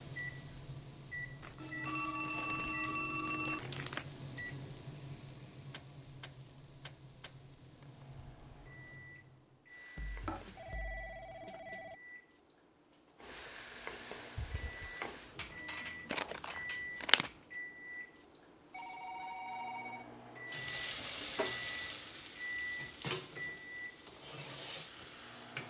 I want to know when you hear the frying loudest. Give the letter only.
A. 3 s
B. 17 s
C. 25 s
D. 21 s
D.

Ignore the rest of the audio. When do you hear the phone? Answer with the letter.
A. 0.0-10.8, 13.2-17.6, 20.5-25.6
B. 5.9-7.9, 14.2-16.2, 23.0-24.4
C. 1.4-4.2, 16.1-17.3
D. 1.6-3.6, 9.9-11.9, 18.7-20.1
D.